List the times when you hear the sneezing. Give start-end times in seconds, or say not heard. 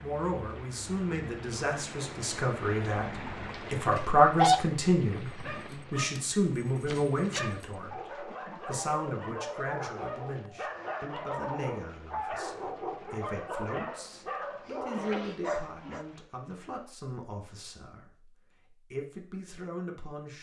4.0-4.6, 6.8-7.5, 14.9-16.0.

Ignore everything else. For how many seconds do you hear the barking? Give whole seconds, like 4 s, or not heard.
11 s.